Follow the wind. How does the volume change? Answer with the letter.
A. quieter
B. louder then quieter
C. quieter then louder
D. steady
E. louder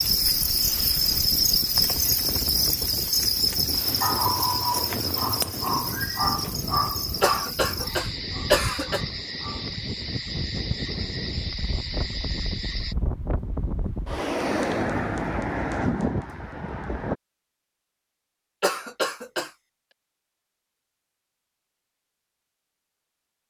E.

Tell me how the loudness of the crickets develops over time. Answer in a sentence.
The volume of the crickets goes down.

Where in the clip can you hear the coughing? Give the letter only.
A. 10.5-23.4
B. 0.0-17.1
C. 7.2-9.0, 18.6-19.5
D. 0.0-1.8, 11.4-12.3
C.